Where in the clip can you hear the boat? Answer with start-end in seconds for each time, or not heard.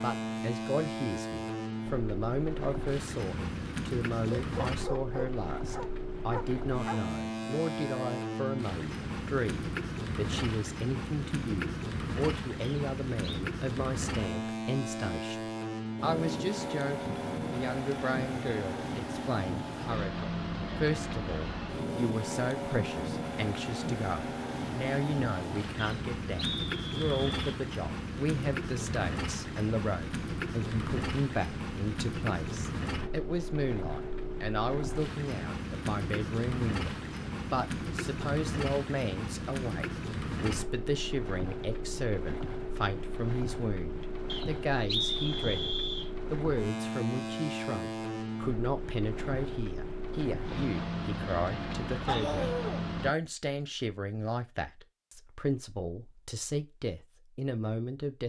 0.0-53.1.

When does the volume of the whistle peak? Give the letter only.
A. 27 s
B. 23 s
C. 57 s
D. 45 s
D.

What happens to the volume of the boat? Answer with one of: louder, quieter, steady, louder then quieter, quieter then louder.
steady.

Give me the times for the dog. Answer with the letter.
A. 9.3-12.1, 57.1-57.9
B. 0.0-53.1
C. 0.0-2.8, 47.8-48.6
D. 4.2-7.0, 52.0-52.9
D.